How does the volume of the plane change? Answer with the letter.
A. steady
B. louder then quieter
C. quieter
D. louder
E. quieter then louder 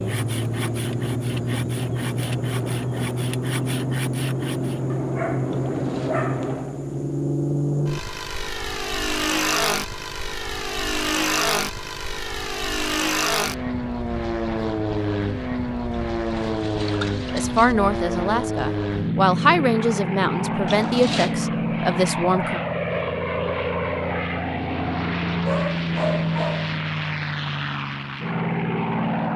A.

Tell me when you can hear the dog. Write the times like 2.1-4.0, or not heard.
4.9-6.5, 25.4-26.8.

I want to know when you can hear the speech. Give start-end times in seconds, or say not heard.
17.3-22.6.